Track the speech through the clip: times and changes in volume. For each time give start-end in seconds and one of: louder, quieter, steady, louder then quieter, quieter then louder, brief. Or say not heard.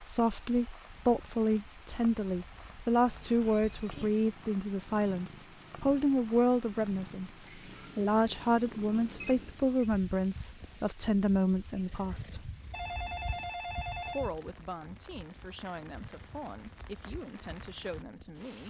0.0-12.5 steady
14.1-18.6 steady.